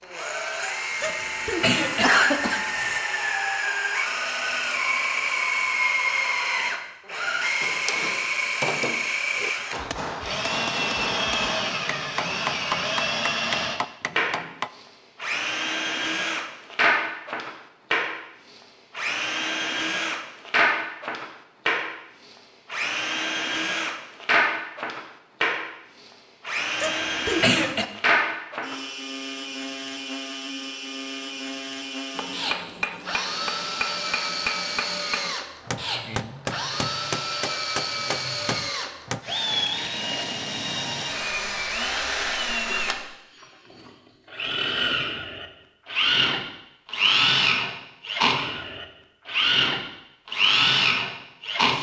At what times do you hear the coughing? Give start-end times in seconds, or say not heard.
1.0-3.0, 26.8-27.9.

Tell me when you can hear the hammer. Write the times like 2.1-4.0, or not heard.
7.6-14.7, 32.1-39.2.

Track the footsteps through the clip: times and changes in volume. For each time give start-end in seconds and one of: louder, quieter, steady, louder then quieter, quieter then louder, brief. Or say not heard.
not heard.